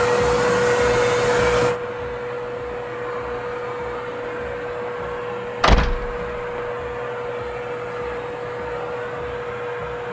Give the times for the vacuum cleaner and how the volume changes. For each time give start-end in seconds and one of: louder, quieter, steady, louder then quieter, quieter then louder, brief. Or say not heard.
0.0-10.0 quieter.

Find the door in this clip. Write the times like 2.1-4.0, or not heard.
5.6-6.6.